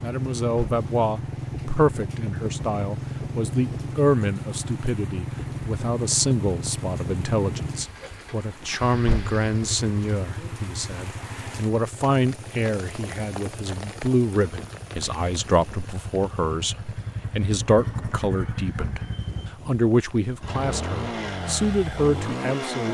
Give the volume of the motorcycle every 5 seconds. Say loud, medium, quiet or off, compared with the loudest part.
loud, loud, medium, loud, loud.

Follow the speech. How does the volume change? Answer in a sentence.
The loudness of the speech stays about the same.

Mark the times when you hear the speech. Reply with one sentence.
The speech can be heard from 0.0 to 19.0 s and from 19.6 to 22.8 s.